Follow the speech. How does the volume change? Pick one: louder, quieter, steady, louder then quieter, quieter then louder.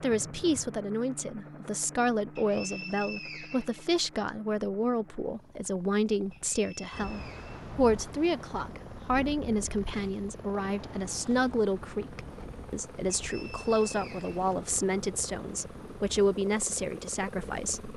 steady.